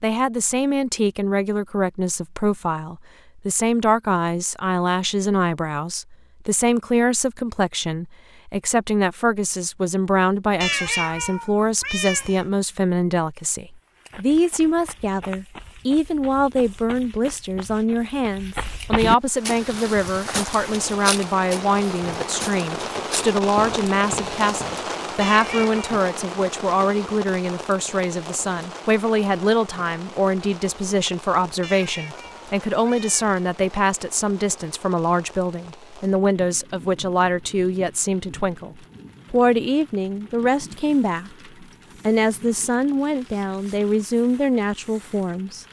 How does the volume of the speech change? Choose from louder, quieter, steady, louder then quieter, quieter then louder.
steady.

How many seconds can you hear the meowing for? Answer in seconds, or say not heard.
4 s.